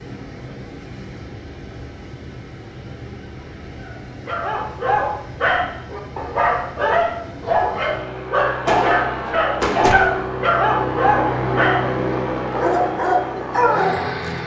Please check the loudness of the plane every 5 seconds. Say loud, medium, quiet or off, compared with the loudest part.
quiet, medium, loud.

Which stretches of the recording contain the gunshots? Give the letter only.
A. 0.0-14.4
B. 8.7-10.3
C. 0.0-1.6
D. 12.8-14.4
B.